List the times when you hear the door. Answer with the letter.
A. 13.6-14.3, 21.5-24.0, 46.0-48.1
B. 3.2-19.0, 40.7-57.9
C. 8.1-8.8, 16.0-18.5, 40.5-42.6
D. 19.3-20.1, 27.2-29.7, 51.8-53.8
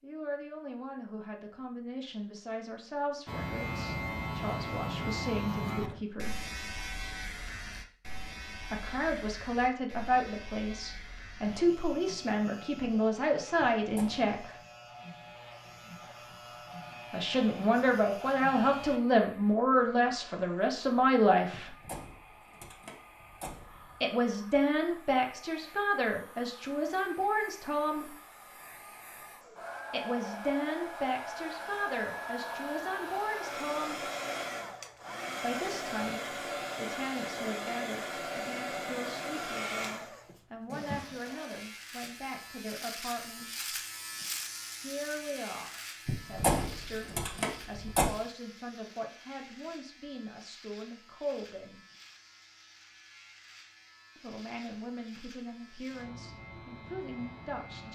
A.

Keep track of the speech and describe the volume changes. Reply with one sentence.
The loudness of the speech goes up, then down.